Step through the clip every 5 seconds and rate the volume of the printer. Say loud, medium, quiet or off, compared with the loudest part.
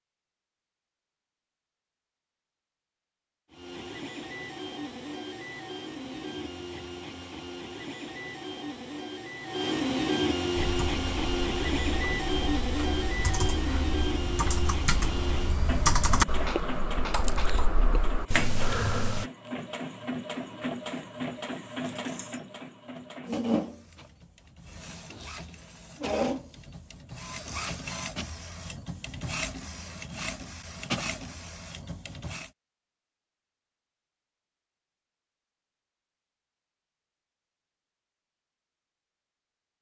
medium, medium, loud, medium, medium, medium, medium, off.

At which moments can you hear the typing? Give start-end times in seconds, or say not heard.
10.6-19.2.